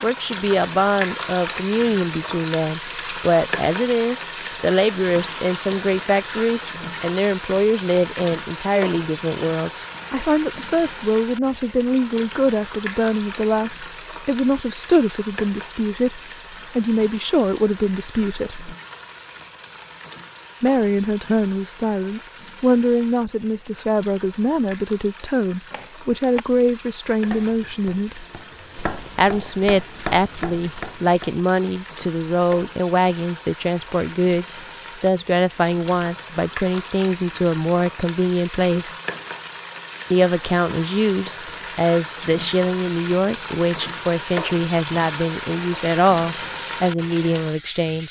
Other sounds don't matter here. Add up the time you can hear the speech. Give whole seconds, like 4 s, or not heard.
44 s.